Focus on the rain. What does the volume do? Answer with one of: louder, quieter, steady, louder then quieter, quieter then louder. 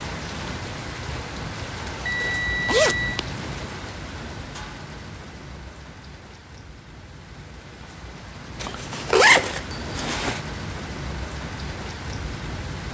quieter then louder.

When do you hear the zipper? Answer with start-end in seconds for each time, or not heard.
2.2-3.3, 8.6-10.4.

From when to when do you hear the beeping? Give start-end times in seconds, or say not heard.
2.0-3.2.